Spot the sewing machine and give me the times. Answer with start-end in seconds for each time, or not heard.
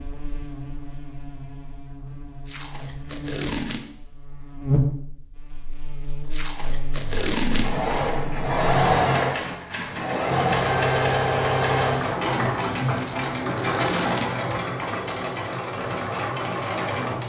7.0-17.2.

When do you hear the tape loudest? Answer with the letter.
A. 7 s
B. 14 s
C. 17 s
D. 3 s
A.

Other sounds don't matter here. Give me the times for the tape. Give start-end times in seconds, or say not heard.
2.5-3.9, 6.3-8.0, 12.9-14.5.